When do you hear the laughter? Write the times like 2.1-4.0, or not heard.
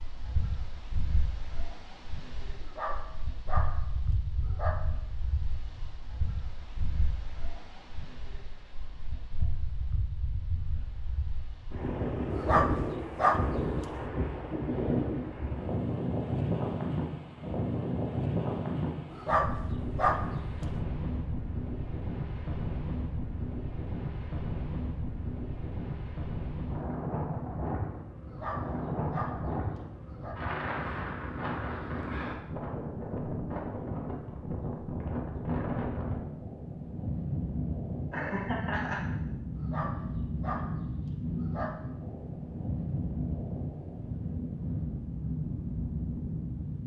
38.1-39.0.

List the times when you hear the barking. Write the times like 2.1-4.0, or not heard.
2.6-4.8, 12.3-13.8, 19.1-20.6, 28.2-30.4, 39.5-41.8.